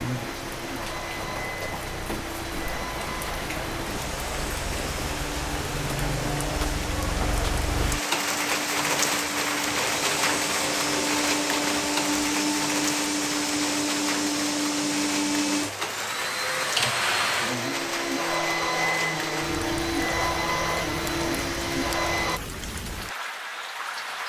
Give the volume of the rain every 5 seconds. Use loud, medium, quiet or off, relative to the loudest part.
medium, loud, loud, medium, medium.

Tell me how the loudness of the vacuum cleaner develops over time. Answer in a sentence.
The volume of the vacuum cleaner goes up.